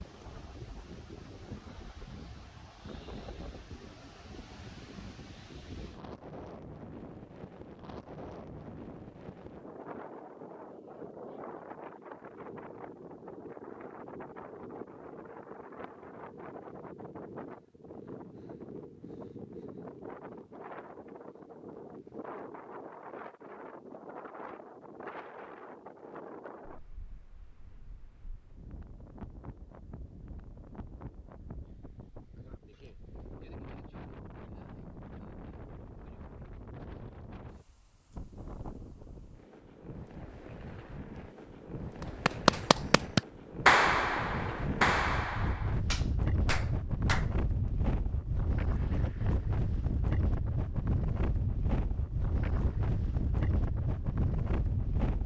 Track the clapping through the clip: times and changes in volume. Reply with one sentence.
The clapping can be heard from 42.2 to 47.4 s, getting quieter.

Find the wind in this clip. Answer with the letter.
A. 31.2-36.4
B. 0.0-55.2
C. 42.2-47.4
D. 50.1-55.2
B.